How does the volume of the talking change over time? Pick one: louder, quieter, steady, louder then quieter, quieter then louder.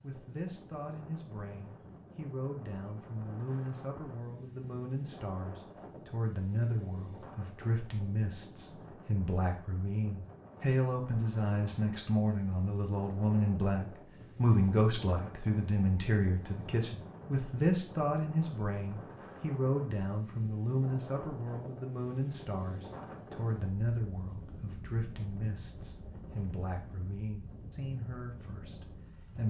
louder then quieter.